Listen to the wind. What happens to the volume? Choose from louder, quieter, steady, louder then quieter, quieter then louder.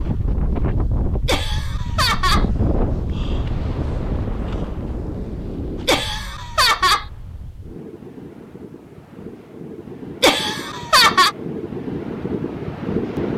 quieter then louder.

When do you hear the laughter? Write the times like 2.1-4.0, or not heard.
1.2-2.5, 5.8-7.0, 10.2-11.3.